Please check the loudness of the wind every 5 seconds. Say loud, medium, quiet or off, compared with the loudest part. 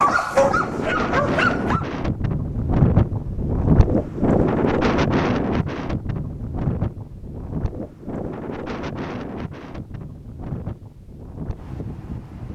loud, medium, quiet.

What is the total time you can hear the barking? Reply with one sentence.
You can hear the barking for 2 seconds altogether.